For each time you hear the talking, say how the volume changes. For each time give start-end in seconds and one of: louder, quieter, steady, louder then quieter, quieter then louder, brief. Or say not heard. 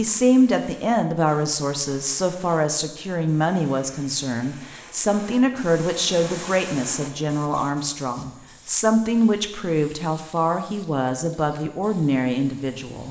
0.0-13.0 steady.